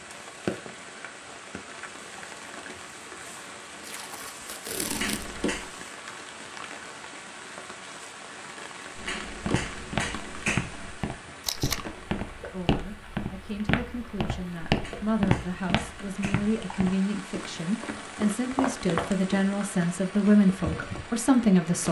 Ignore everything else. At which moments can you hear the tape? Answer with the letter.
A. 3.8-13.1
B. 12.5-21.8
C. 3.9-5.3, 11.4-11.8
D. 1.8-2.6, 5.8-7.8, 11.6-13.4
C.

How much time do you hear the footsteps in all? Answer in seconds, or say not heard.
10 s.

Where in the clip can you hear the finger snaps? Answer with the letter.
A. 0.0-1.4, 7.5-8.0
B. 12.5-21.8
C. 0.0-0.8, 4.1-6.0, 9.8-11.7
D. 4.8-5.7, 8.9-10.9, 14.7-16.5
D.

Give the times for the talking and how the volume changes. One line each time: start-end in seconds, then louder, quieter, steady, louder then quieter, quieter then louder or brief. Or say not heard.
12.5-21.8 louder.